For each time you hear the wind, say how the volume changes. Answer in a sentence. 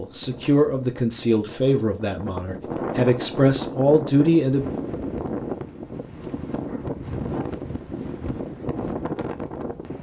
You can hear the wind from 0.0 to 9.9 s, getting louder.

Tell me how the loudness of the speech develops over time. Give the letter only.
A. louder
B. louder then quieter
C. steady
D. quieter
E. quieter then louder
E.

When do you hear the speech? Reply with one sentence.
You can hear the speech from 0.0 to 4.7 s.